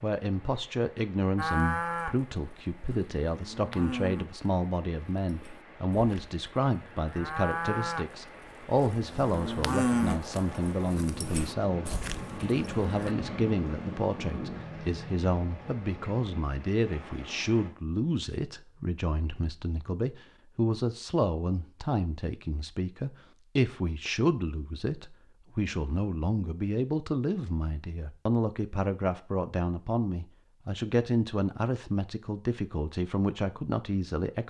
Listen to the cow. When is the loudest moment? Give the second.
10 s.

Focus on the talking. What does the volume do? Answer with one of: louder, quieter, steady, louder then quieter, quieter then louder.
steady.